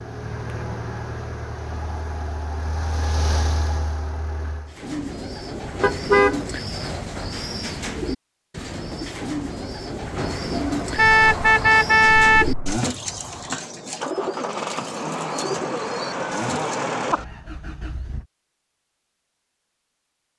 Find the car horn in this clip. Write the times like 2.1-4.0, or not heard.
5.8-6.4, 10.9-12.6.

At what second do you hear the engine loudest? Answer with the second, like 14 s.
17 s.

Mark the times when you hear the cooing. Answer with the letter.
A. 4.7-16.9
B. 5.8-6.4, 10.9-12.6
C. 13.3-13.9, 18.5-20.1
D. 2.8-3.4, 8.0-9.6
A.